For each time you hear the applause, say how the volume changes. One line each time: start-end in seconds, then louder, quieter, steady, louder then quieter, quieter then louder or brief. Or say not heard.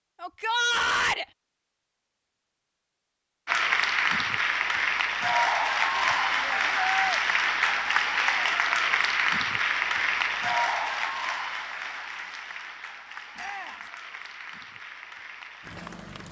3.5-16.2 quieter.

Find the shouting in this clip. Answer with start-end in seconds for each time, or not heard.
0.2-1.2, 5.9-7.2, 13.3-13.8.